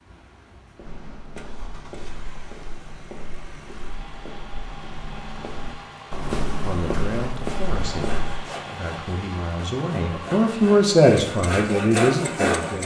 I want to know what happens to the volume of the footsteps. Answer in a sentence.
The volume of the footsteps goes up.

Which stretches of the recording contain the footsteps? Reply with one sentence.
You can hear the footsteps from 0.8 to 8.4 s.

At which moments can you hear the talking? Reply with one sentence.
The talking can be heard from 6.6 to 12.8 s.